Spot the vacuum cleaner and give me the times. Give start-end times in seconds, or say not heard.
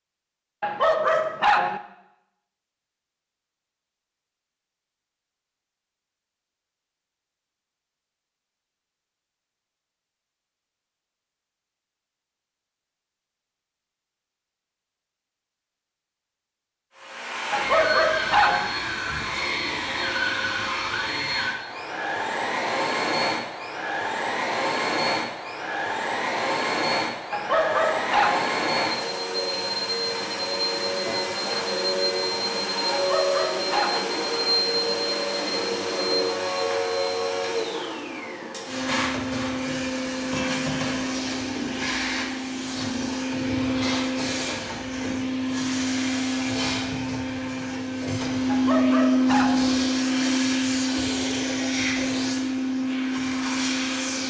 16.9-54.2.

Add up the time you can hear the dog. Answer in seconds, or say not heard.
6 s.